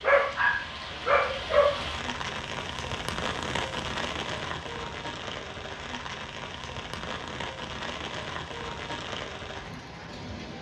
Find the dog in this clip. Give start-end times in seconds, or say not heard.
0.0-1.8.